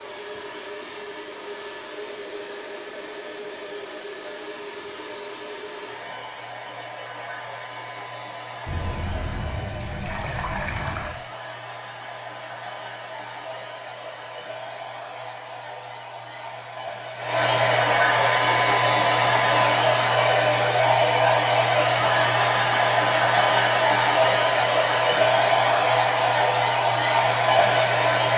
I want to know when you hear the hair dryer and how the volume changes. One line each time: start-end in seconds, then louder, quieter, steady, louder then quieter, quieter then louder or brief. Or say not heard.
0.0-28.3 louder.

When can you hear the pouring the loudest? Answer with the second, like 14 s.
11 s.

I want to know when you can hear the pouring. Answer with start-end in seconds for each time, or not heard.
8.7-11.2.